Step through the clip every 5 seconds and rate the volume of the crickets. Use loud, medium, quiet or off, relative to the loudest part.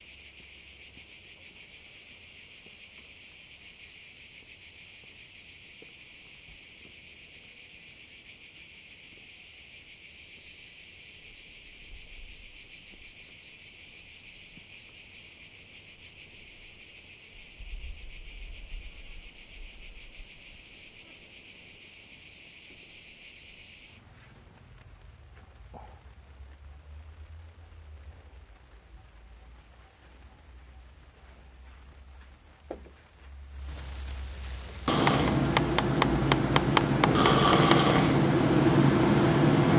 quiet, quiet, quiet, quiet, quiet, quiet, loud, loud.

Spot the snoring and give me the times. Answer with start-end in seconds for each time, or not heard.
34.9-39.7.